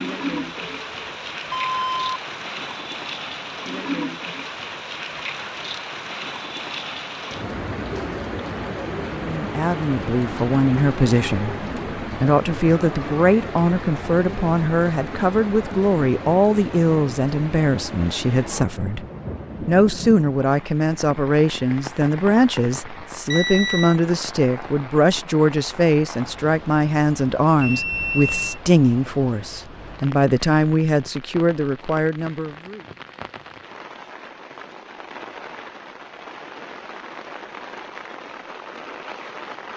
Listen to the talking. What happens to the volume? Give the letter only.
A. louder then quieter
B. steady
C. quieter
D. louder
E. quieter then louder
B.